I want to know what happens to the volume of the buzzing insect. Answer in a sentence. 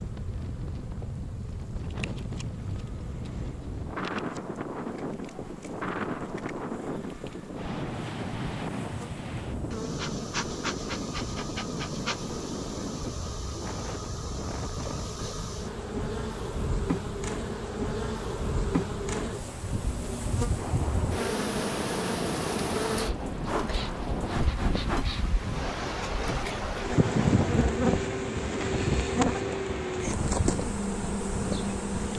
The volume of the buzzing insect goes up.